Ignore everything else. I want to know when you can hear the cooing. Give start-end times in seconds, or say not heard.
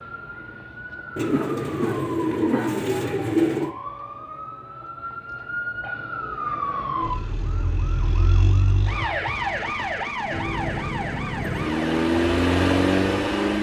1.1-3.7.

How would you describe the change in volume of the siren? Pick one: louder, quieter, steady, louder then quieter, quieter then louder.
louder.